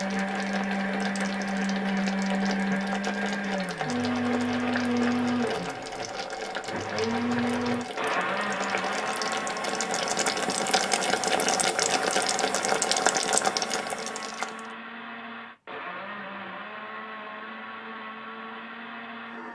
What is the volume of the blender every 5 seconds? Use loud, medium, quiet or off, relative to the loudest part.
loud, loud, medium, medium.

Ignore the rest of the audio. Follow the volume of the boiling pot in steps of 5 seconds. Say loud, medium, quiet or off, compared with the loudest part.
medium, medium, loud, off.